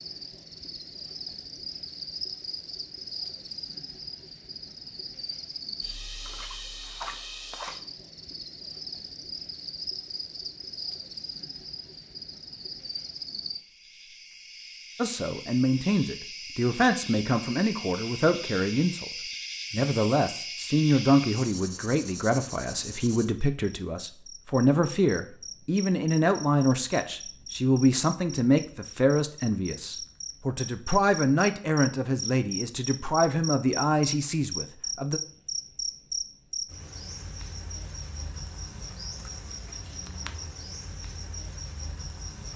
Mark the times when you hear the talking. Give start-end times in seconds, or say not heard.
14.9-19.1, 19.7-35.2.